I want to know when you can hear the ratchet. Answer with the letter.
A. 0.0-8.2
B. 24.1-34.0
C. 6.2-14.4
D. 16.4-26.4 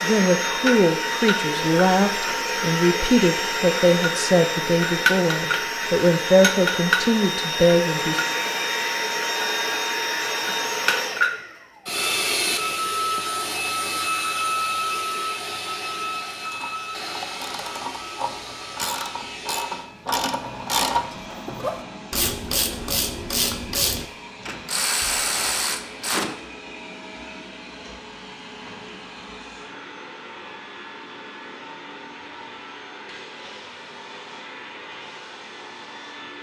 D.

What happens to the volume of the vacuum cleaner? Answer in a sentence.
The loudness of the vacuum cleaner goes down.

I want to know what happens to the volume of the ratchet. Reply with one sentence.
The volume of the ratchet goes up.